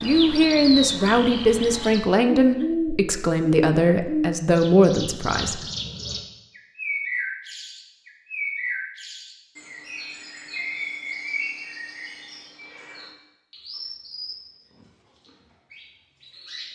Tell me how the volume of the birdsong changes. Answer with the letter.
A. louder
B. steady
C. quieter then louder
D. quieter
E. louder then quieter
D.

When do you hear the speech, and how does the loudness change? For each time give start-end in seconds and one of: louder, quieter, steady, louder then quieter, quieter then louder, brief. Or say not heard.
0.0-5.6 steady.